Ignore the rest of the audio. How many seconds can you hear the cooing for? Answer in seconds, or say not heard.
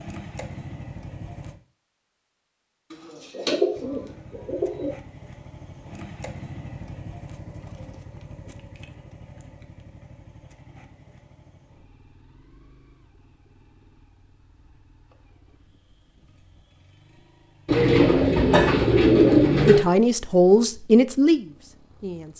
4 s.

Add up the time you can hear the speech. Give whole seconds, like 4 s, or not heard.
3 s.